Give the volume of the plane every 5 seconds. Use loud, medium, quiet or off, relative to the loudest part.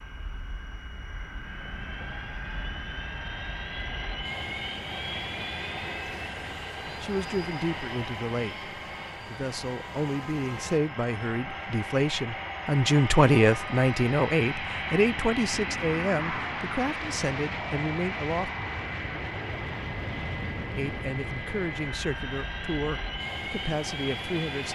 medium, loud, loud, loud, loud.